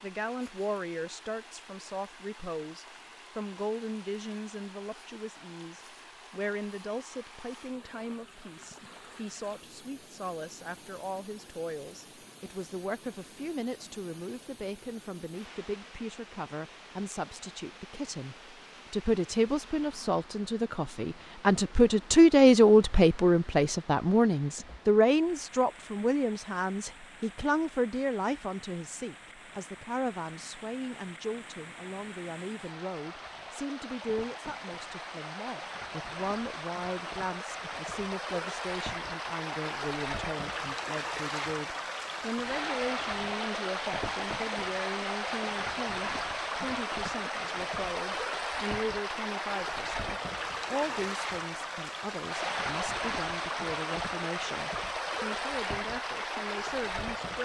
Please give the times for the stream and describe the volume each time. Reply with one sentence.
The stream can be heard from 0.0 to 57.3 s, getting louder.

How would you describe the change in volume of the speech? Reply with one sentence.
The volume of the speech goes up, then down.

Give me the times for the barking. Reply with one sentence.
You can't hear the barking here.